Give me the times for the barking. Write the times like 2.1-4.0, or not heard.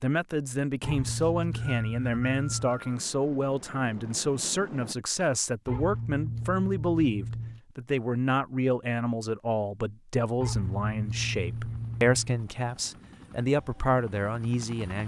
0.8-2.8, 5.7-7.6, 10.4-12.4.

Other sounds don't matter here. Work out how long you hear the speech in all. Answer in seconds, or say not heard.
15 s.